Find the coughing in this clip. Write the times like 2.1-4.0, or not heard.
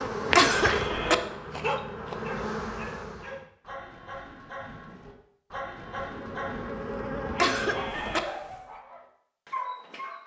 0.3-1.1, 7.3-8.2.